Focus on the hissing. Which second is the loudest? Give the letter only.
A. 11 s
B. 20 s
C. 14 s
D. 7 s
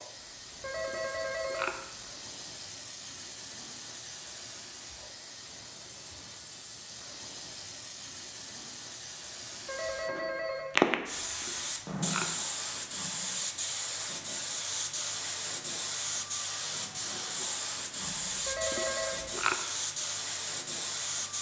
A.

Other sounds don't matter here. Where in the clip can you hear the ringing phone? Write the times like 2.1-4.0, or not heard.
0.6-1.7, 9.7-10.7, 18.4-19.2.